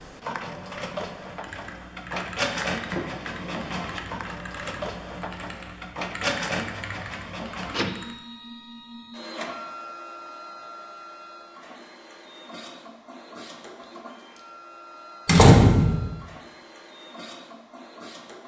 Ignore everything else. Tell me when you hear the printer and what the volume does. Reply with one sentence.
You can hear the printer from 0.0 to 18.4 s, getting quieter.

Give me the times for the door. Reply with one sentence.
The door can be heard from 2.9 to 4.2 s and from 15.2 to 16.1 s.